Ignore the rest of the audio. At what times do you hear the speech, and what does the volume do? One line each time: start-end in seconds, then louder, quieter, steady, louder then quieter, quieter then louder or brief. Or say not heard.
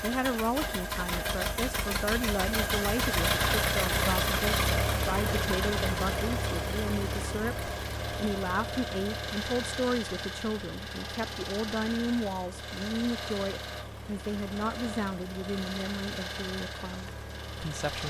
0.0-18.0 steady.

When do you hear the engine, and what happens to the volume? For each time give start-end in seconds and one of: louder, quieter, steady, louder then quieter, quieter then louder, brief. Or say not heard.
0.0-18.0 quieter.